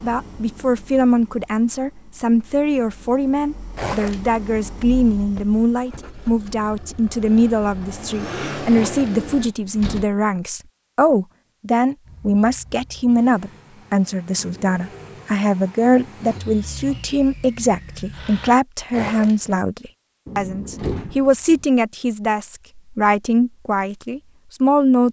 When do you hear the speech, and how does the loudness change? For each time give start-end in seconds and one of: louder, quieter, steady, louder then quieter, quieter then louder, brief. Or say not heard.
0.0-25.0 steady.